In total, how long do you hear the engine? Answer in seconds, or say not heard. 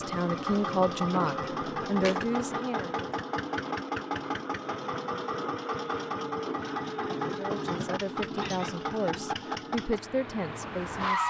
11 s.